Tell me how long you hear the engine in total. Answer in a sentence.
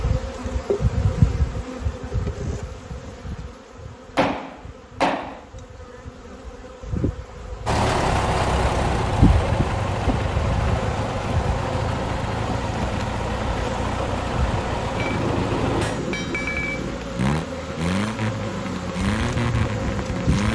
The engine can be heard for 13 seconds in total.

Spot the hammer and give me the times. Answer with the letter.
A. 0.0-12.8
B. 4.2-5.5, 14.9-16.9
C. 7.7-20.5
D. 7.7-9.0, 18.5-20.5
B.